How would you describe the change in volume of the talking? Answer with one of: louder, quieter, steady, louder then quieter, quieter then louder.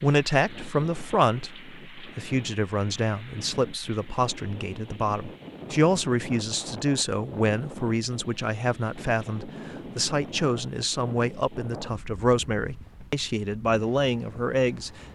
steady.